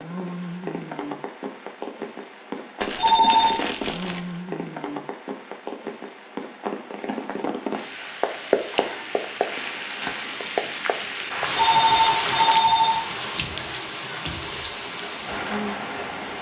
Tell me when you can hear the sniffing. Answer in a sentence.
You can't hear the sniffing here.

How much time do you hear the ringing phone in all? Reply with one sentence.
You can hear the ringing phone for 2 seconds altogether.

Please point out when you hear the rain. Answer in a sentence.
You can hear the rain from 0.0 to 16.3 s.